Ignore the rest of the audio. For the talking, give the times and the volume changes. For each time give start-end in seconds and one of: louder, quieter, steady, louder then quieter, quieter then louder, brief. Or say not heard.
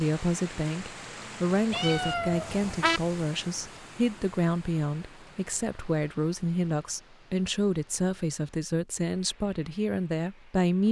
0.0-10.8 steady.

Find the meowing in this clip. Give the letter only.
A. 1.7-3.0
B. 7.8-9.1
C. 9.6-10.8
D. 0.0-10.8
A.